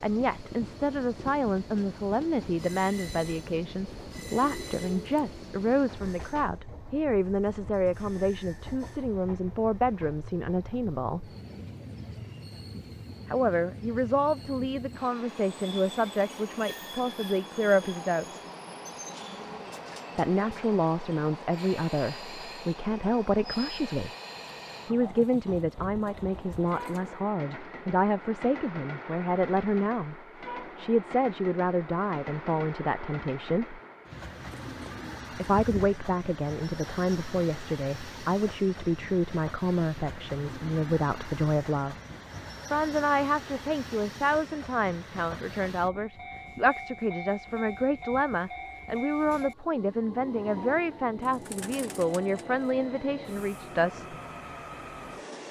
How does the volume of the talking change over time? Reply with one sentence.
The volume of the talking stays about the same.